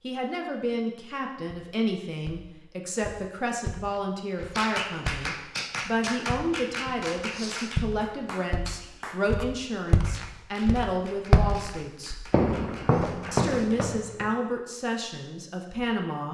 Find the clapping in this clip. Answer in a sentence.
The clapping can be heard from 4.3 to 13.8 s.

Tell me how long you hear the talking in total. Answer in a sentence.
You can hear the talking for 15 seconds altogether.